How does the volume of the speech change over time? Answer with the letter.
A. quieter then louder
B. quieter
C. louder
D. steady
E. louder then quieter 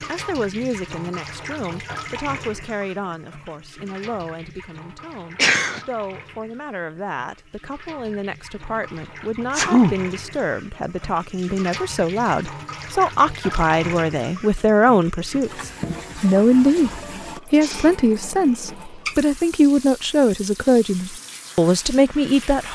C.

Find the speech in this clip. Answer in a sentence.
You can hear the speech from 0.1 to 22.7 s.